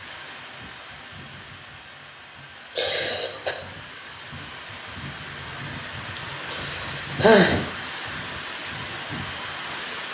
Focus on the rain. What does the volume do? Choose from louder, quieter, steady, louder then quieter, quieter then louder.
louder.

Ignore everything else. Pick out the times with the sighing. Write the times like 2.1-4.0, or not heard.
2.8-3.5, 6.5-7.6.